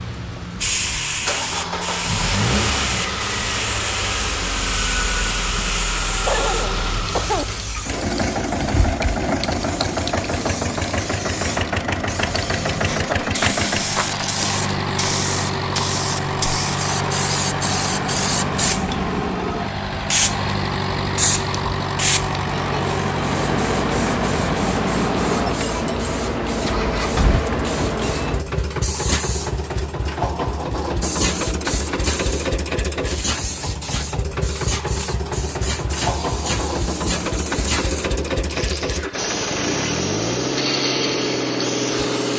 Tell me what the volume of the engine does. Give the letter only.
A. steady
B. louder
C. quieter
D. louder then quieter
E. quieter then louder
A.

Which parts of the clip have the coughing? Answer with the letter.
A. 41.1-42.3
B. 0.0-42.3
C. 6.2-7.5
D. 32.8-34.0
C.